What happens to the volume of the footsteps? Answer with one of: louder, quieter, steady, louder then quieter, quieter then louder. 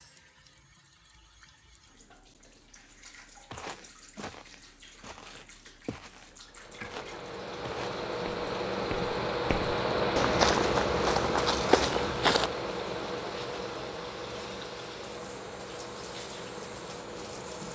louder.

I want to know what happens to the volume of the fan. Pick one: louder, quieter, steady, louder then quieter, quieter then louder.
louder then quieter.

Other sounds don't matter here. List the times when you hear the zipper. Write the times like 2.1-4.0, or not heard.
not heard.